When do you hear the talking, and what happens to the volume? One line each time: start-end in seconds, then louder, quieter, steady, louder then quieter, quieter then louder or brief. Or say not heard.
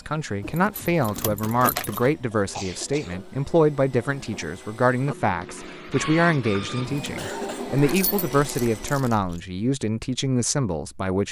0.1-11.2 steady.